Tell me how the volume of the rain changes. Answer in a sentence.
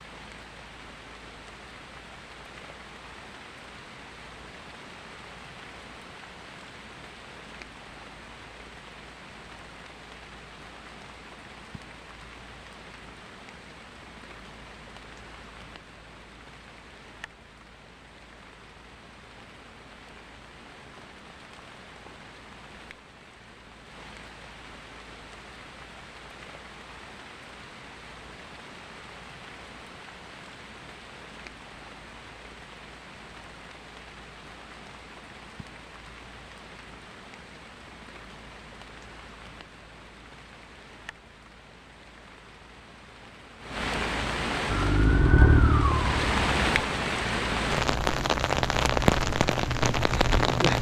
The volume of the rain goes up.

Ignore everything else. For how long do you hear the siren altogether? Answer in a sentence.
The siren can be heard for 2 seconds in total.